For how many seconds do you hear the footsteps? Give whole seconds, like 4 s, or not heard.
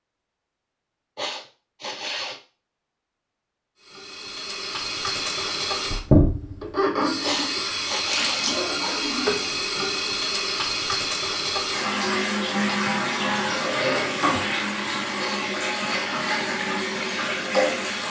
not heard.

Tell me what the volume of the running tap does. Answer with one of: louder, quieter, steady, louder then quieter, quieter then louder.
steady.